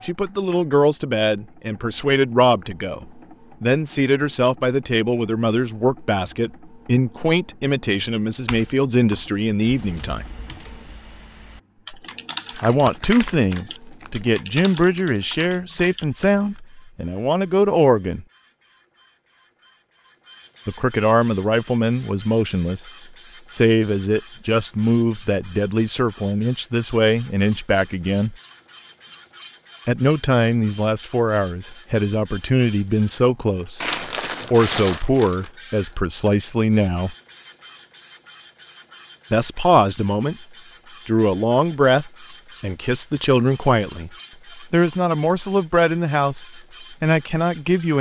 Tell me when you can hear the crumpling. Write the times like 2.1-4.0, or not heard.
12.3-14.8, 33.8-35.5.